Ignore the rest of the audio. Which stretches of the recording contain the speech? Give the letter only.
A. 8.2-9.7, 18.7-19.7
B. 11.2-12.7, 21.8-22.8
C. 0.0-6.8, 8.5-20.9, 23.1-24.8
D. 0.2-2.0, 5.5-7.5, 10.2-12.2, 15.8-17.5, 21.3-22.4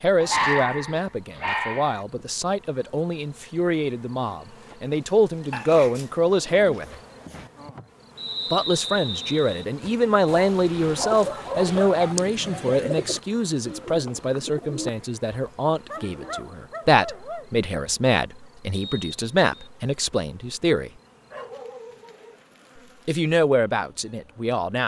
C.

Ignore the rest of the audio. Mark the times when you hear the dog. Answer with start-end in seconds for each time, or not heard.
0.2-2.0, 5.5-7.5, 10.2-12.2, 15.8-17.5, 21.3-22.4.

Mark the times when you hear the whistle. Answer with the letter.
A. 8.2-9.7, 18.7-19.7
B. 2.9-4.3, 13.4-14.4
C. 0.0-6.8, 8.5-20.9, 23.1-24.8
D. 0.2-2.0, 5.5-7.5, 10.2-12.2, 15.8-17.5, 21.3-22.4
A.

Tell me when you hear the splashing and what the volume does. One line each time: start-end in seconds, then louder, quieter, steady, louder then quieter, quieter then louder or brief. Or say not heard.
not heard.